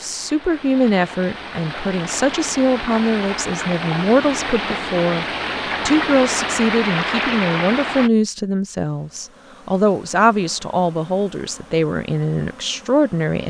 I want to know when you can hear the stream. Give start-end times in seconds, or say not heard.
0.0-8.1.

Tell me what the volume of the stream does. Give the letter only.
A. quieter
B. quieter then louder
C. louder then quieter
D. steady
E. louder
E.